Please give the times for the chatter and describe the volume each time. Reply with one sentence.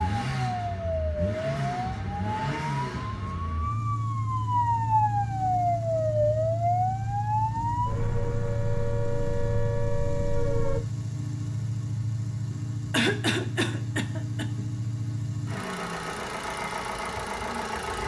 The chatter can't be heard in this clip.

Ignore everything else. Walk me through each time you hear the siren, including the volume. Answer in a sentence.
You can hear the siren from 0.0 to 10.8 s, getting louder then quieter.